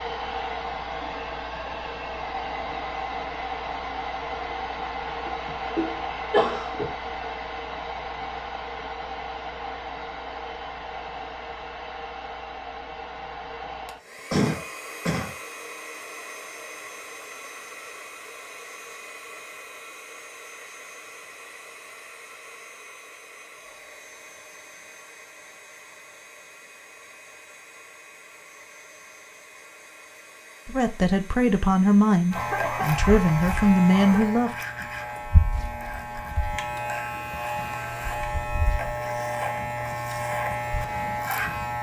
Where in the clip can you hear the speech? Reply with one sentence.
The speech can be heard from 30.6 to 34.5 s.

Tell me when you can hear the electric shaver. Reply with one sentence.
The electric shaver can be heard from 32.3 to 41.7 s.